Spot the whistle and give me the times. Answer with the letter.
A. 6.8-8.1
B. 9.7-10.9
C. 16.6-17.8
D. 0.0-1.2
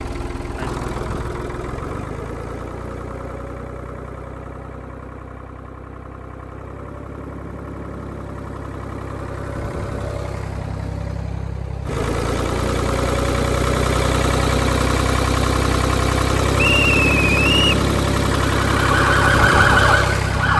C.